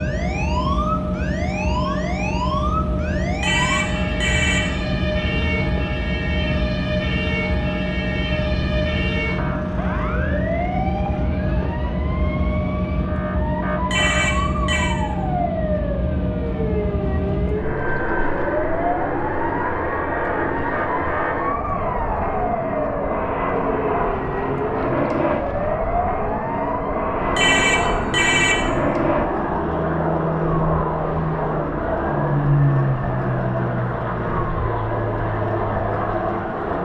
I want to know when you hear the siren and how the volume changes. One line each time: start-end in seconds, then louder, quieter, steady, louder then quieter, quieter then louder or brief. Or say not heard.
0.0-36.8 steady.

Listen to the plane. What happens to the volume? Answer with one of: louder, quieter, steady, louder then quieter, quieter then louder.
steady.